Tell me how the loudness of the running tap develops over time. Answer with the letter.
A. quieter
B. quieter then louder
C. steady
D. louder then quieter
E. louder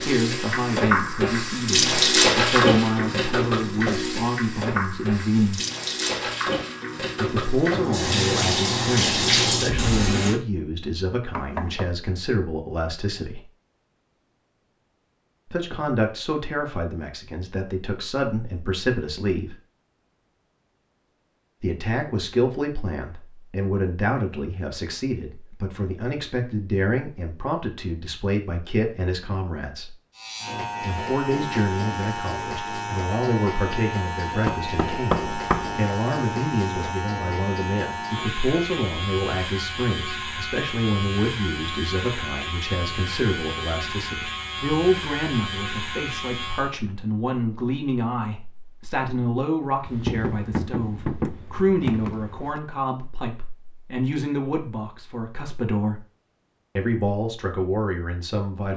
B.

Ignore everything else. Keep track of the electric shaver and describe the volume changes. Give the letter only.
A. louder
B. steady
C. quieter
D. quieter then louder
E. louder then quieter
B.